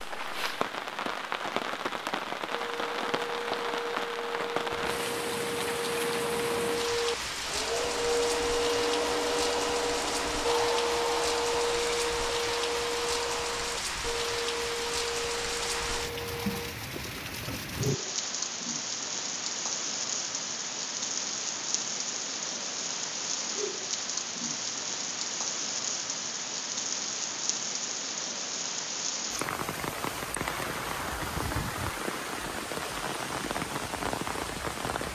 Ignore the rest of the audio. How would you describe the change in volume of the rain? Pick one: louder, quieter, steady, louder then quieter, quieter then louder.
steady.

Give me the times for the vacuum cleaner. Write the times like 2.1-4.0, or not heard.
2.5-16.8.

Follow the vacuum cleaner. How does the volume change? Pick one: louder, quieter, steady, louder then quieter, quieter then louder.
louder then quieter.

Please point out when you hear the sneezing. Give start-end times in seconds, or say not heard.
not heard.